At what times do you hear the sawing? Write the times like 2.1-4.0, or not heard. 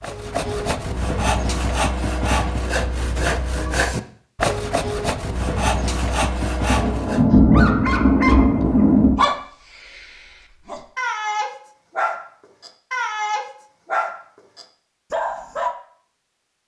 0.0-7.2.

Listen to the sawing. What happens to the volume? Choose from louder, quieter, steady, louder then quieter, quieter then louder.
steady.